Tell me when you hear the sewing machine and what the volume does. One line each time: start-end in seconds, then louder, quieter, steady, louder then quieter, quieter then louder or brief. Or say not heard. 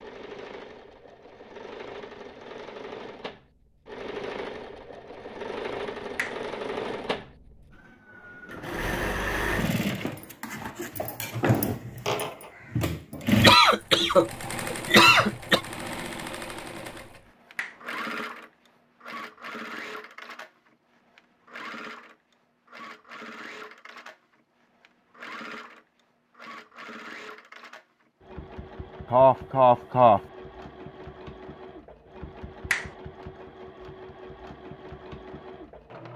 0.0-36.1 louder then quieter.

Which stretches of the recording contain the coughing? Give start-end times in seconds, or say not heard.
13.4-15.6, 29.1-30.2.